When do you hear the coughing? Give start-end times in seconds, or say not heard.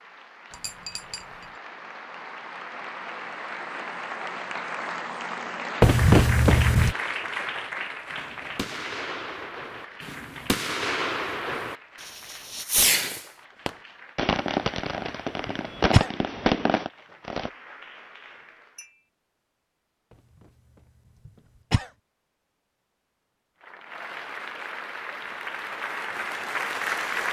5.8-7.0, 15.4-16.1, 21.2-21.9.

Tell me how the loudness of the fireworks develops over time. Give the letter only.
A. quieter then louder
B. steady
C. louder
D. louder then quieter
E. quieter
C.